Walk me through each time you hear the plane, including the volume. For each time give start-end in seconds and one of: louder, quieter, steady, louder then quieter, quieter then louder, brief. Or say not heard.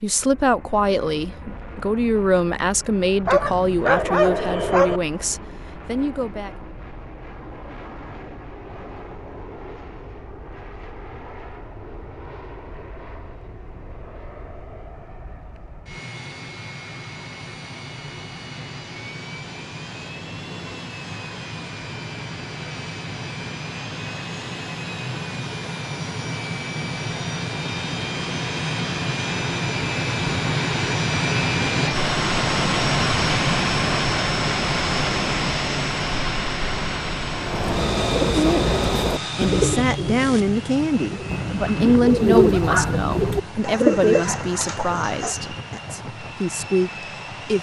0.0-47.5 louder then quieter.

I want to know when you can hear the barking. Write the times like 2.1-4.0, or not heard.
3.2-5.0, 41.2-43.4.